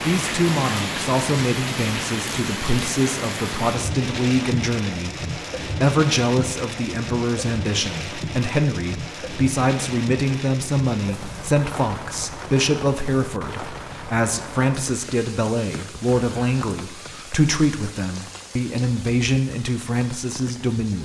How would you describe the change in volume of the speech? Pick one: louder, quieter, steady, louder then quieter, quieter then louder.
steady.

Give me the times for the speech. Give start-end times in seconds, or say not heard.
0.0-20.9.